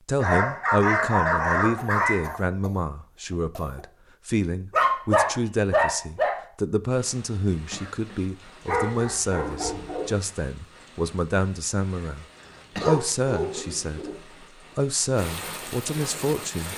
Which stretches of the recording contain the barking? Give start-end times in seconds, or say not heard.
0.2-2.4, 4.7-6.3, 8.7-10.2, 12.8-14.2.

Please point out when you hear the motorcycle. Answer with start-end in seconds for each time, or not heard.
not heard.